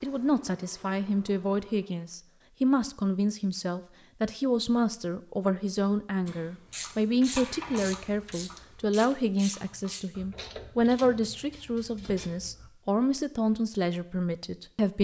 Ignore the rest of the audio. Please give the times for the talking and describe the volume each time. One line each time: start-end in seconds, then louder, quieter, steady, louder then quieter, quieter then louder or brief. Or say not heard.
0.0-14.9 steady.